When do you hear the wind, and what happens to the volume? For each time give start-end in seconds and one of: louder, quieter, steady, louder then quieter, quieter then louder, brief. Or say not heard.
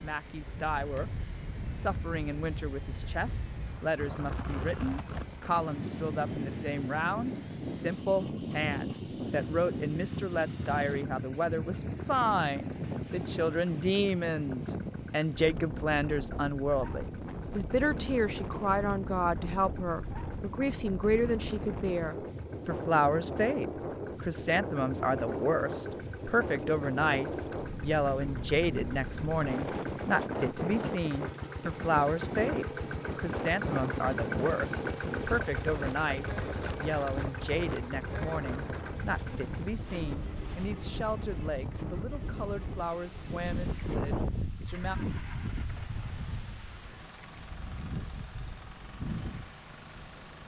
0.0-50.4 steady.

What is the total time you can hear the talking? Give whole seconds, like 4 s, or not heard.
45 s.